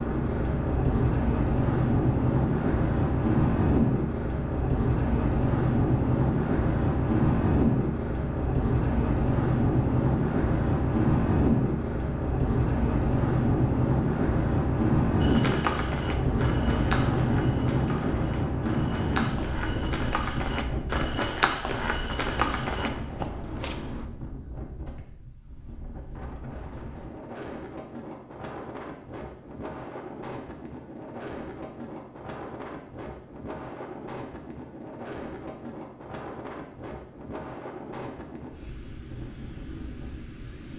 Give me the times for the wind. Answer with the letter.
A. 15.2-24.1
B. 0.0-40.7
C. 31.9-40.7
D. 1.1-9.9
B.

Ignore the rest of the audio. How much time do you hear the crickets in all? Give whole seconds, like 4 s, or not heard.
not heard.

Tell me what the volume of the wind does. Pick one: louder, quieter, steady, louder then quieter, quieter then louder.
quieter.